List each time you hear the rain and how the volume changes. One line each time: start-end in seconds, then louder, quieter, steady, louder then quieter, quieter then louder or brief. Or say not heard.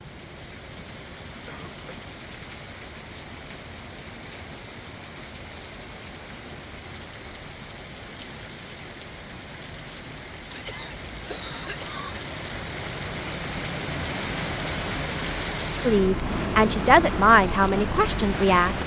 0.0-18.8 louder.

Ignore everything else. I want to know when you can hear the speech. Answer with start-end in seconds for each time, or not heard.
15.8-18.8.